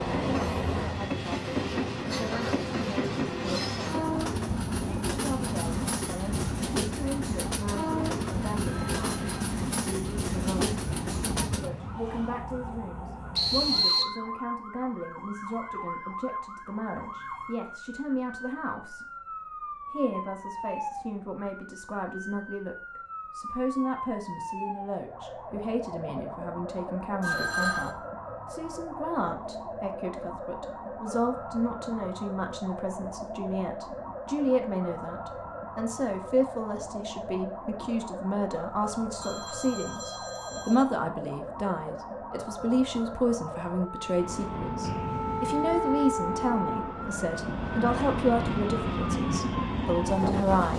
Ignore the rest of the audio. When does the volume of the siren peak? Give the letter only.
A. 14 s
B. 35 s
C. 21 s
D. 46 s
D.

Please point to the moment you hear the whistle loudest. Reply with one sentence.
The volume of the whistle peaks at 14 seconds.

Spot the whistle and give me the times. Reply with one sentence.
The whistle can be heard from 13.3 to 14.1 s and from 44.8 to 45.6 s.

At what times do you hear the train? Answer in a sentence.
The train can be heard from 0.0 to 12.4 s and from 44.0 to 50.7 s.